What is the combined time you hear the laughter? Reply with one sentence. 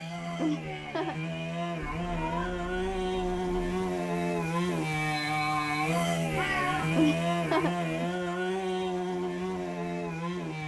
You can hear the laughter for 2 seconds altogether.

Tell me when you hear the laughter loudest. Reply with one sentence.
The loudest moment of the laughter is at 7 seconds.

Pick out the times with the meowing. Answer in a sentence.
You can hear the meowing from 1.8 to 3.8 s and from 6.3 to 7.0 s.